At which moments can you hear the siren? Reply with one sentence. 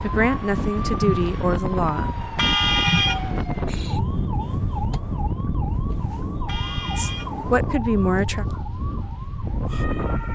You can hear the siren from 0.1 to 10.3 s.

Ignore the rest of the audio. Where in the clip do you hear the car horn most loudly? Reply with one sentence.
The volume of the car horn peaks at 3 seconds.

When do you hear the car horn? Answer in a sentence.
You can hear the car horn from 2.4 to 3.5 s and from 6.5 to 7.5 s.